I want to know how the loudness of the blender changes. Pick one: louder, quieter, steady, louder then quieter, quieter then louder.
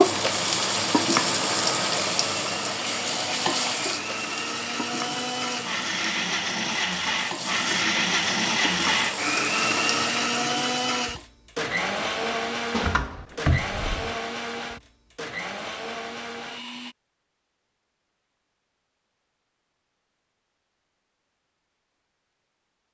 louder then quieter.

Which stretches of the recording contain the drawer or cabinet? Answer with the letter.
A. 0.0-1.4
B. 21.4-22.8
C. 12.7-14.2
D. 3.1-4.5
C.